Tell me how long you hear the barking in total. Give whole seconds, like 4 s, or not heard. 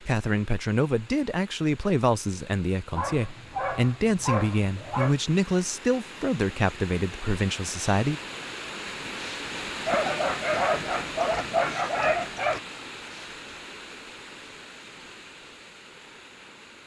5 s.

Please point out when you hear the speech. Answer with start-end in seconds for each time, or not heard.
0.0-8.2.